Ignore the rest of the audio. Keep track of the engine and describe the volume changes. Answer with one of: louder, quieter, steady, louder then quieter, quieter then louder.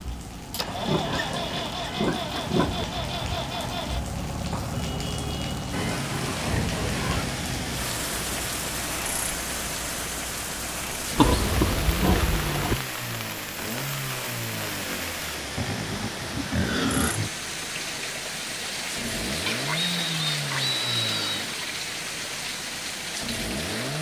steady.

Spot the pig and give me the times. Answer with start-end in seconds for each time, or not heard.
0.8-2.9, 5.7-7.3, 11.2-12.8, 15.6-17.3, 19.3-21.5.